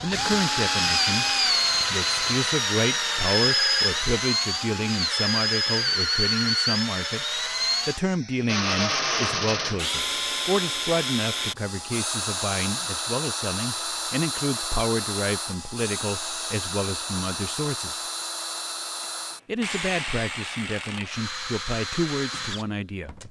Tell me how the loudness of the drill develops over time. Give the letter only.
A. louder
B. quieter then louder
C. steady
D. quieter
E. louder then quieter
D.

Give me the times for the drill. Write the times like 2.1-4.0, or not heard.
0.0-23.2.